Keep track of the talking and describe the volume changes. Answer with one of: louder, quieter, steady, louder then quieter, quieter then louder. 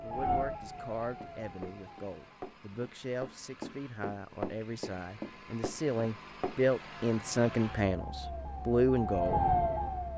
louder.